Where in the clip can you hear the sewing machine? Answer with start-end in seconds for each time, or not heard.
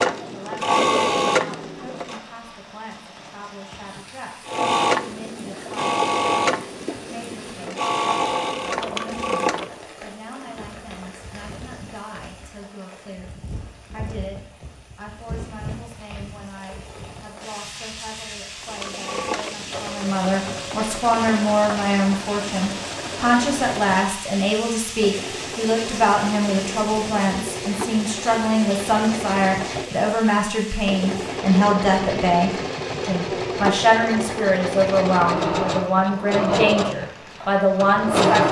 0.0-2.2, 4.5-9.8, 18.6-38.4.